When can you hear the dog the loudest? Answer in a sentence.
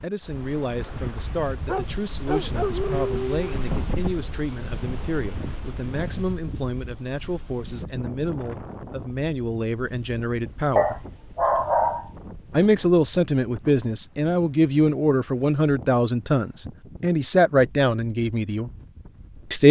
The volume of the dog peaks at 12 seconds.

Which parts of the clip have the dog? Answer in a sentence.
The dog can be heard from 1.6 to 3.5 s and from 10.8 to 12.1 s.